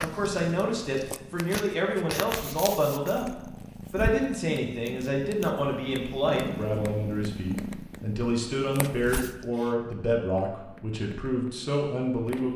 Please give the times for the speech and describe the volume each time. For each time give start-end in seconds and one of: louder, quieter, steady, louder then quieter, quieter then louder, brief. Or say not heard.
0.0-12.5 steady.